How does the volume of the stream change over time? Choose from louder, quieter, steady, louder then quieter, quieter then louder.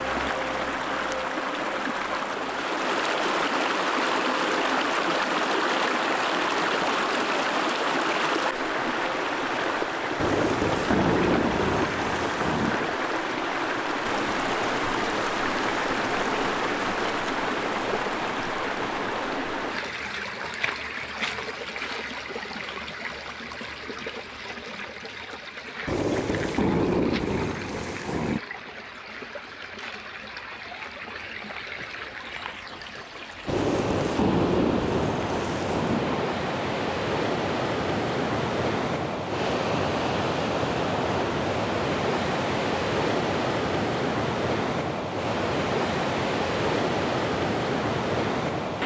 quieter then louder.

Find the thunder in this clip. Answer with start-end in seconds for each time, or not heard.
10.2-12.9, 25.9-28.4, 33.5-36.3.